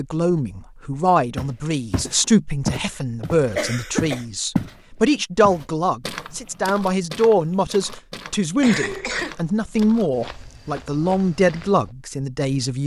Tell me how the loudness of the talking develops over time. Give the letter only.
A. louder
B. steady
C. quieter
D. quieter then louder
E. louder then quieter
B.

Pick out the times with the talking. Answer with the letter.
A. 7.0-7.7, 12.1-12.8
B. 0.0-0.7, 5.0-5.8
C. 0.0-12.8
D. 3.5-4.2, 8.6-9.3
C.